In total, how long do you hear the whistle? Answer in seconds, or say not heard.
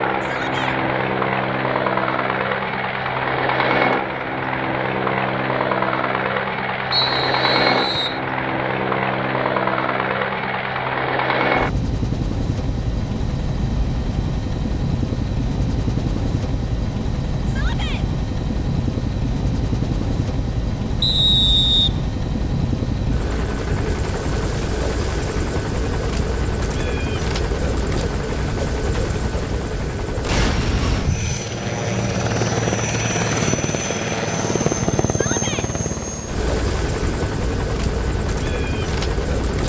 2 s.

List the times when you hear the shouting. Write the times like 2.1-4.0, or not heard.
0.2-0.8, 17.4-18.1, 35.1-35.7.